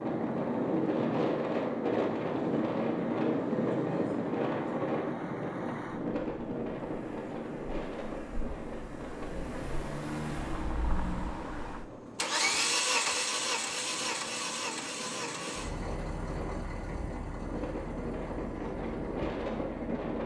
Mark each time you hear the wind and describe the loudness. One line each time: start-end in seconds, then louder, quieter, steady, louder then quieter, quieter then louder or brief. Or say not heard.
0.0-20.2 quieter then louder.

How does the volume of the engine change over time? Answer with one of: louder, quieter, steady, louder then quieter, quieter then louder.
louder then quieter.